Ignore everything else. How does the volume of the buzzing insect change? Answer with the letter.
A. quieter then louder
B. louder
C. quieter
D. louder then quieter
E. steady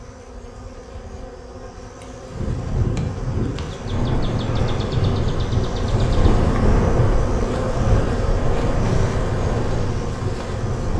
B.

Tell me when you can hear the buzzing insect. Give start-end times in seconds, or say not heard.
0.0-10.9.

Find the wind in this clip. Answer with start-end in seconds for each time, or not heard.
2.3-10.9.